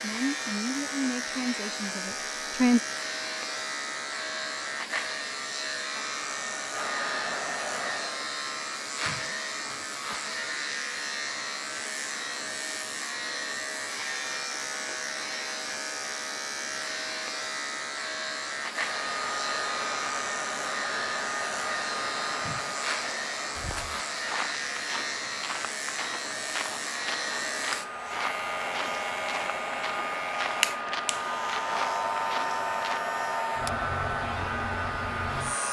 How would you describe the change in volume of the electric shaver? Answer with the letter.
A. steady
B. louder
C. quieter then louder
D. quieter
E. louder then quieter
A.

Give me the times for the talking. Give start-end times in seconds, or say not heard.
0.0-2.8.